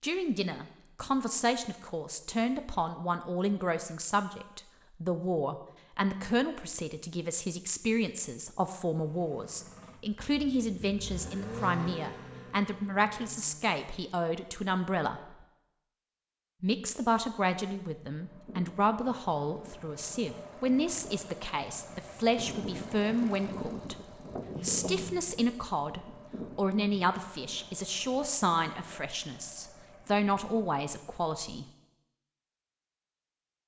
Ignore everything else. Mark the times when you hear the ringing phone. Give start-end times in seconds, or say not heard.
24.5-25.1.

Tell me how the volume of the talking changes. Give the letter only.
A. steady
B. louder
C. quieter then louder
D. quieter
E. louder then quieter
A.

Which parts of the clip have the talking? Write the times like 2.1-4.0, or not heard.
0.0-15.4, 16.6-23.9, 24.6-31.6.